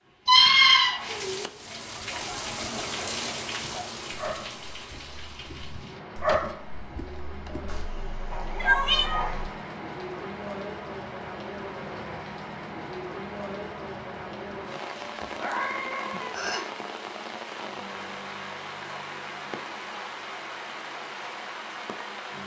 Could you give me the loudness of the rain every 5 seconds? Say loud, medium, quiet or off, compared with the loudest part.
loud, medium, loud, loud, loud.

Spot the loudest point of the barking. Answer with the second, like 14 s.
6 s.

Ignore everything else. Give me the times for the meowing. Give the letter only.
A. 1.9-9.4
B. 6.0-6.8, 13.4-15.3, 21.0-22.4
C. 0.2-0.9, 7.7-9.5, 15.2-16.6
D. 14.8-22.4
C.